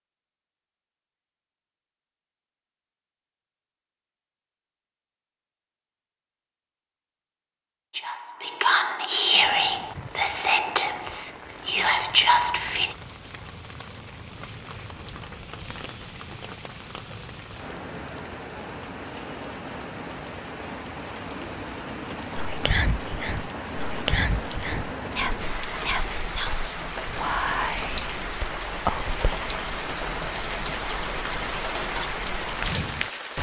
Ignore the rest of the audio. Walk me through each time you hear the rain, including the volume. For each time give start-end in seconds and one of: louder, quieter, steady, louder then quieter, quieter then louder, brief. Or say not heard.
9.4-33.3 louder.